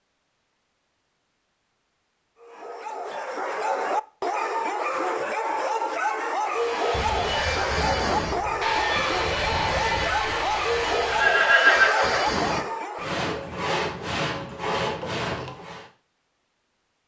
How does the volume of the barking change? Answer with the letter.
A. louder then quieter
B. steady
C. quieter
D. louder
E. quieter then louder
B.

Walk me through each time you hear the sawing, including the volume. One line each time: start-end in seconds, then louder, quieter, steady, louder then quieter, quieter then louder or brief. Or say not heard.
6.5-15.9 steady.